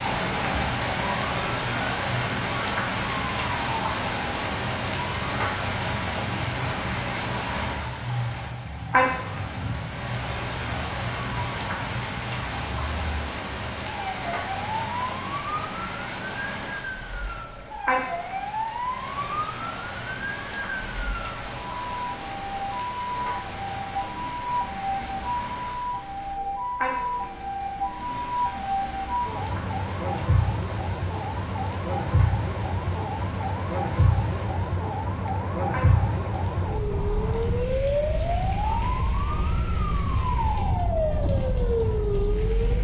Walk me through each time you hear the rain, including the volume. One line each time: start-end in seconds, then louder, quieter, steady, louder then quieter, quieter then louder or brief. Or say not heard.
0.0-42.7 quieter.